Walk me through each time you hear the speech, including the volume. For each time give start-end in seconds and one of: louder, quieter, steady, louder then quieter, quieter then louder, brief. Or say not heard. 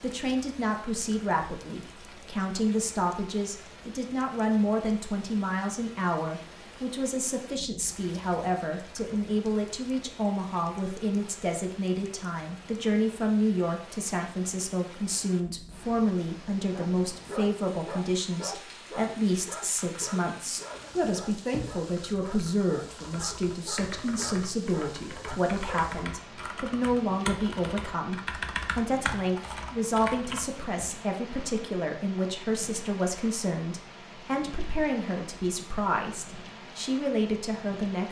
0.0-38.0 steady.